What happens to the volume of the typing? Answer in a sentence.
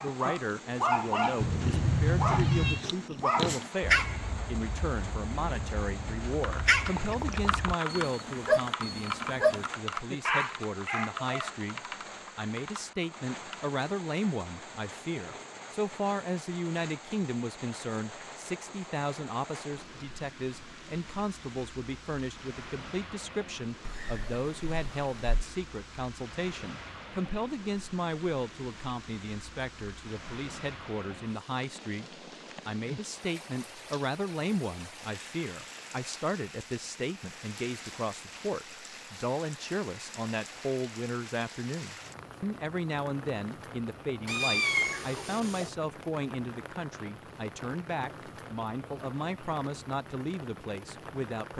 The loudness of the typing goes down.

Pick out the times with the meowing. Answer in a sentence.
The meowing can be heard from 1.4 to 2.9 s, from 23.9 to 25.4 s and from 44.2 to 45.7 s.